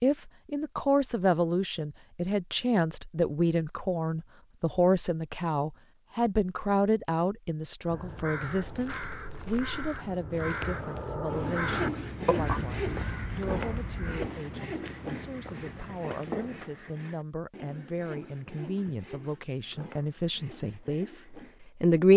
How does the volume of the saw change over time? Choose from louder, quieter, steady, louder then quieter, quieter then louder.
quieter.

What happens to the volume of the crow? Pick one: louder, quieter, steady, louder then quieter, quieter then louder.
louder then quieter.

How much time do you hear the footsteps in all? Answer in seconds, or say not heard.
8 s.